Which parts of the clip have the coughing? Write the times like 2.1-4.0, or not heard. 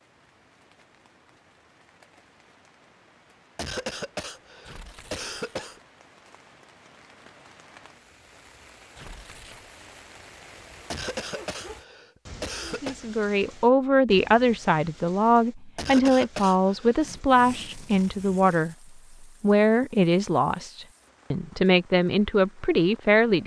3.5-5.8, 10.9-12.9, 15.8-17.0.